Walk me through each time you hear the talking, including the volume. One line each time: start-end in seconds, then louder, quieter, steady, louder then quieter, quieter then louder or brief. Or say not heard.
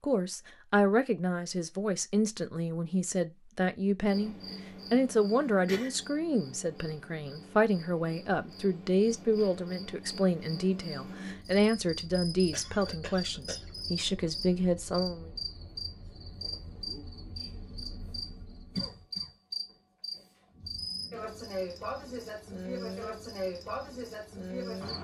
0.0-15.3 steady.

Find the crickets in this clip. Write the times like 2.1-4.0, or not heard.
4.0-24.9.